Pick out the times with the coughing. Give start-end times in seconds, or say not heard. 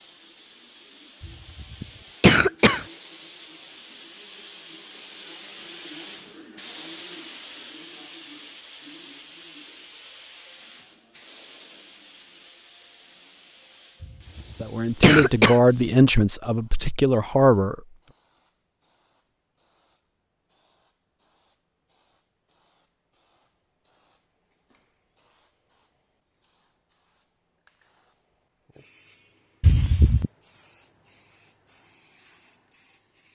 1.6-2.9, 14.0-15.6, 29.6-30.3.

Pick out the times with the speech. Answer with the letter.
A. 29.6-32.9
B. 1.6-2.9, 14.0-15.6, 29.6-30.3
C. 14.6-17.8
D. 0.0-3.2
C.